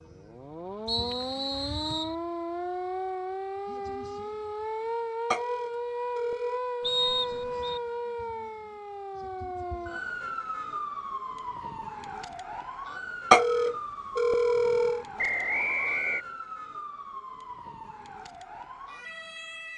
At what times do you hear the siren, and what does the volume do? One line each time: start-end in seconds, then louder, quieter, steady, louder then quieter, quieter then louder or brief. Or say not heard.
0.0-19.7 quieter.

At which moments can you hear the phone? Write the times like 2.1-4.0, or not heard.
5.3-6.6, 13.3-15.1.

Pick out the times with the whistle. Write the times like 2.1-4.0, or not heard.
0.8-2.1, 6.8-7.8, 15.2-16.2.